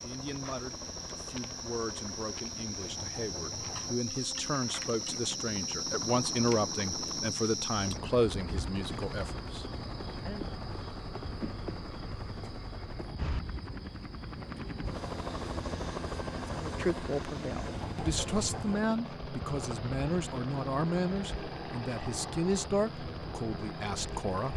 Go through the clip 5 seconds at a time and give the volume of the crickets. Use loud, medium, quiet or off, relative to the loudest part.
loud, loud, medium, medium, medium.